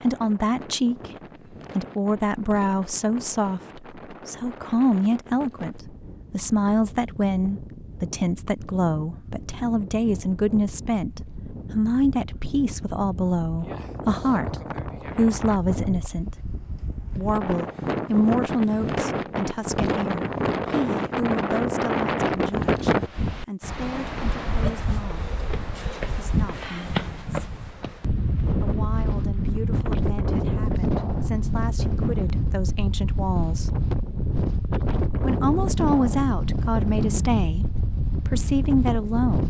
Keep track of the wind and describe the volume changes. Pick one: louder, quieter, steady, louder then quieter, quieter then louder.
louder.